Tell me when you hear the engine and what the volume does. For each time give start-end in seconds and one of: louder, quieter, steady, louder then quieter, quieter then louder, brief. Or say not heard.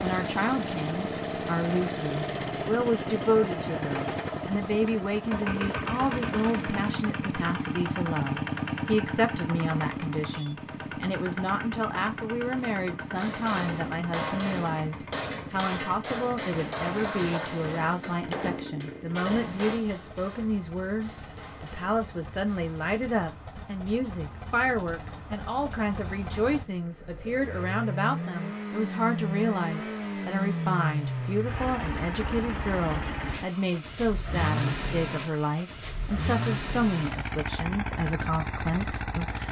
0.0-39.4 quieter then louder.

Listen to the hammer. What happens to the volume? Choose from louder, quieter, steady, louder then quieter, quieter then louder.
quieter.